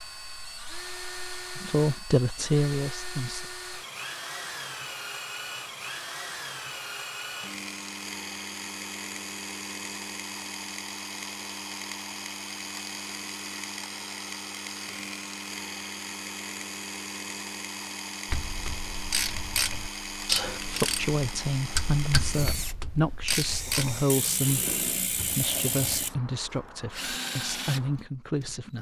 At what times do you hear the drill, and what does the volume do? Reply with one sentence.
You can hear the drill from 0.0 to 28.6 s, at a steady volume.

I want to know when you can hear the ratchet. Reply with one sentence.
The ratchet can be heard from 18.2 to 26.1 s.